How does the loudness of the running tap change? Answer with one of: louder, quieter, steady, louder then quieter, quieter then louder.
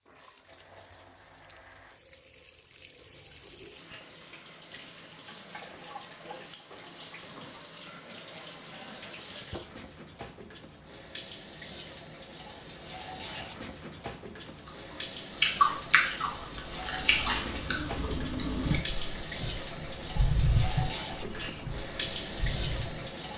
louder.